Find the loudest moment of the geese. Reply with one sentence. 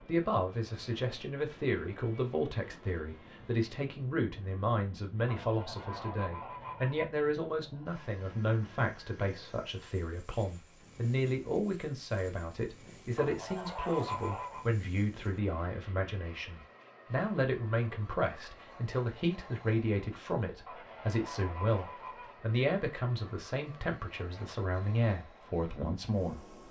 The loudest moment of the geese is at 14 seconds.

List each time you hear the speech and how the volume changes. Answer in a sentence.
You can hear the speech from 0.1 to 26.6 s, at a steady volume.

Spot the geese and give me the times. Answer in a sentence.
You can hear the geese from 5.2 to 7.0 s, from 13.2 to 14.7 s and from 20.6 to 22.4 s.